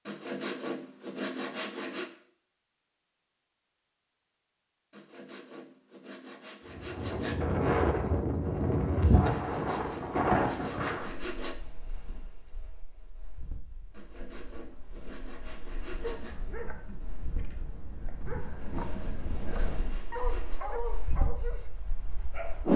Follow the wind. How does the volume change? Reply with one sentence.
The volume of the wind goes down, then up.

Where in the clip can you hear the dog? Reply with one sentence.
You can hear the dog from 16.0 to 22.7 s.